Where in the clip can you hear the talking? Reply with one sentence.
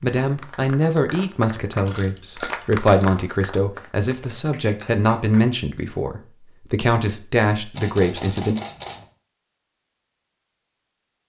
You can hear the talking from 0.0 to 8.6 s.